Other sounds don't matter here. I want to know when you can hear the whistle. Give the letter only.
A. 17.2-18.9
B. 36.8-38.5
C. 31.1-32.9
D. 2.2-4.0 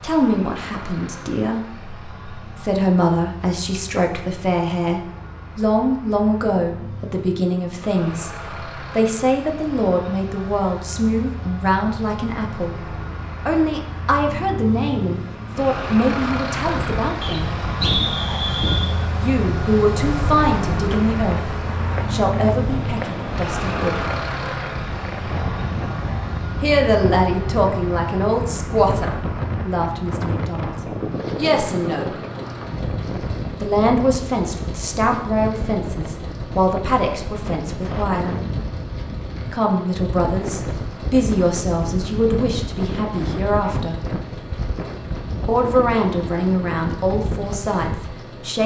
A.